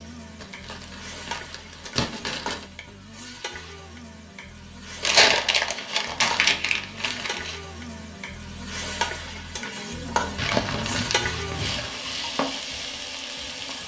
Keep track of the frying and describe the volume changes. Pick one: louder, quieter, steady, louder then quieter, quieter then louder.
louder.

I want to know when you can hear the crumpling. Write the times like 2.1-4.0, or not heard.
0.4-2.6, 5.0-7.5, 10.3-12.0.